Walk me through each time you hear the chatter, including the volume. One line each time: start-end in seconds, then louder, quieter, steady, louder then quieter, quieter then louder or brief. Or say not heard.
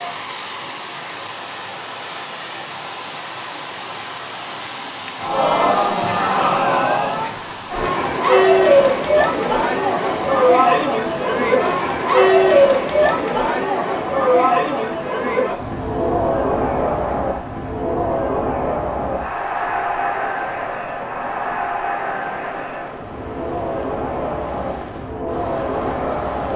5.2-26.5 quieter.